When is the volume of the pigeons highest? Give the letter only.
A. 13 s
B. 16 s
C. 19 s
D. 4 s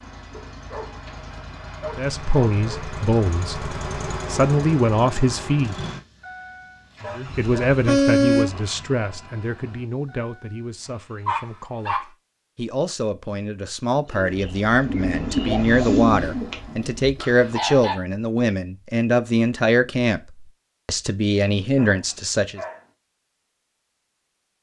B.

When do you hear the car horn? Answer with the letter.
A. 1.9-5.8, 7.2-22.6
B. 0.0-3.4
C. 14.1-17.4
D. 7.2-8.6
D.